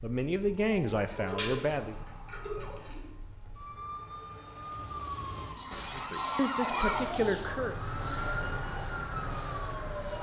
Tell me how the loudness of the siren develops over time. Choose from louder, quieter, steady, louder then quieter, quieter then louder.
louder.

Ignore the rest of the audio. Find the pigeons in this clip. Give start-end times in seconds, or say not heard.
1.1-3.0, 5.5-7.5.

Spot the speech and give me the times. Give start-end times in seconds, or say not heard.
0.0-1.9, 6.0-7.8.